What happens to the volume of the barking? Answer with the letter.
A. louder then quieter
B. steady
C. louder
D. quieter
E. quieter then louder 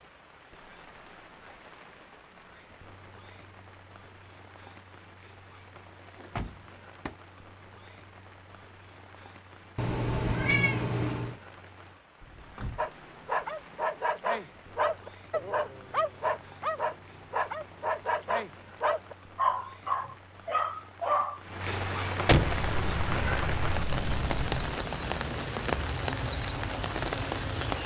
B.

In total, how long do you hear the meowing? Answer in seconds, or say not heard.
4 s.